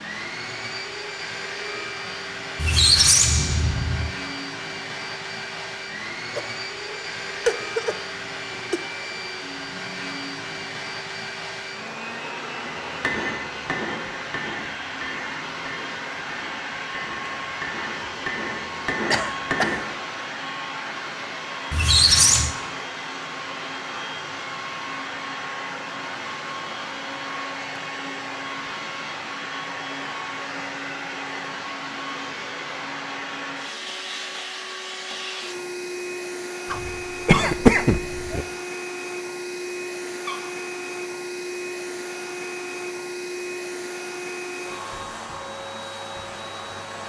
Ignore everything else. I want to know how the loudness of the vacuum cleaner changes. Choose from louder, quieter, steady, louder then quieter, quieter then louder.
steady.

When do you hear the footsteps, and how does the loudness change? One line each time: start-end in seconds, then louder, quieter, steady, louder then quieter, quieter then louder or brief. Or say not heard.
not heard.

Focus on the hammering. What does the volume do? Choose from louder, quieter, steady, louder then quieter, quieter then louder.
quieter then louder.